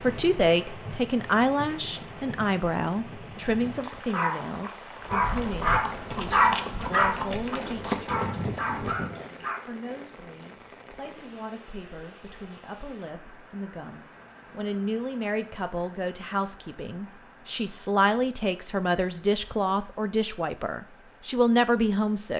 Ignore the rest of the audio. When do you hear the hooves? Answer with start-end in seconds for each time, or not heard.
5.0-9.2.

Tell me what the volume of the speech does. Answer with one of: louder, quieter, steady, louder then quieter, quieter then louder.
quieter then louder.